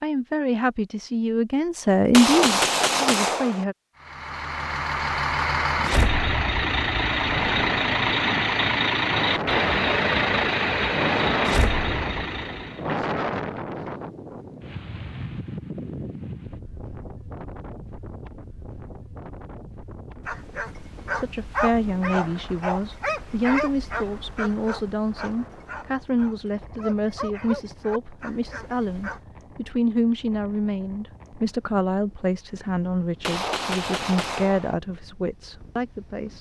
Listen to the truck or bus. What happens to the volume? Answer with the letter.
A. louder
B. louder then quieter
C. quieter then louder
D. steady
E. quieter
D.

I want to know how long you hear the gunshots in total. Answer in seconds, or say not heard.
3 s.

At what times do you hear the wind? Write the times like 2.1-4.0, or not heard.
7.2-36.3.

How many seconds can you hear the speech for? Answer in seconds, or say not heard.
19 s.